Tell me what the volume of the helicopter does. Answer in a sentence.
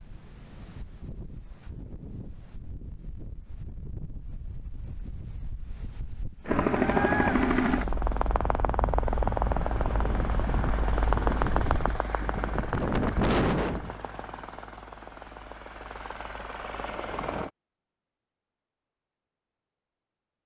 The volume of the helicopter goes down.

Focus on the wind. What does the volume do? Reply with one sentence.
The volume of the wind goes up.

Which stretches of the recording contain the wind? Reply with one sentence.
You can hear the wind from 0.0 to 13.9 s.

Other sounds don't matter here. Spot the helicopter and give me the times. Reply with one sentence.
The helicopter can be heard from 6.5 to 17.5 s.